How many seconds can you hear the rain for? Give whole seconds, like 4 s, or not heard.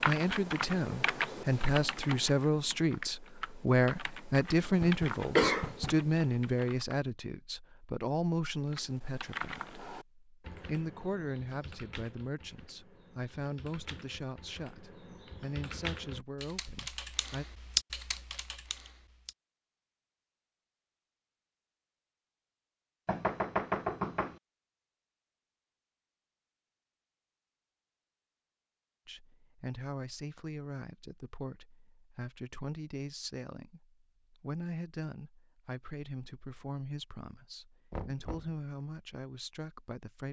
not heard.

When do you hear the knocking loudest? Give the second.
24 s.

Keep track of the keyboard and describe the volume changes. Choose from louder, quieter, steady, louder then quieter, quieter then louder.
quieter then louder.